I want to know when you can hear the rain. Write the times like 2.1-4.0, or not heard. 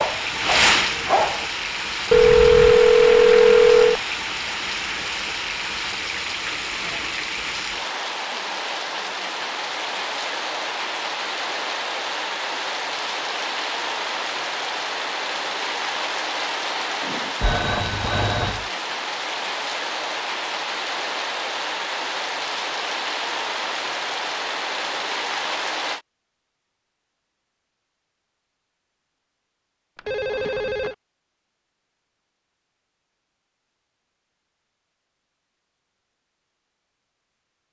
0.0-26.0.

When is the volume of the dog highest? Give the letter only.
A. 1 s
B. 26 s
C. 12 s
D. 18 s
A.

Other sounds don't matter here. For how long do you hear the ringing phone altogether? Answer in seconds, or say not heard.
4 s.